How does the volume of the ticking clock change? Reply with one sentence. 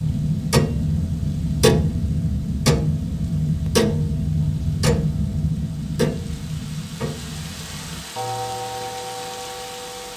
The loudness of the ticking clock goes down.